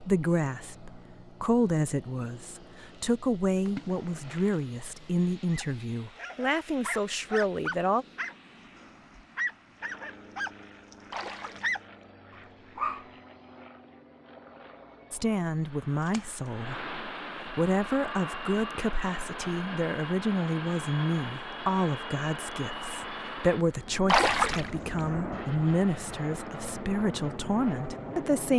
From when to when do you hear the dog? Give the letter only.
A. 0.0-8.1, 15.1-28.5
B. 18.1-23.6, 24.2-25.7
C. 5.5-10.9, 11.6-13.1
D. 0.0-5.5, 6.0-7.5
C.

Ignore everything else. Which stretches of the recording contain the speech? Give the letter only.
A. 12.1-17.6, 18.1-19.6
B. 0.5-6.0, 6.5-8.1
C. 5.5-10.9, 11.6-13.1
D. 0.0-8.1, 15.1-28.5
D.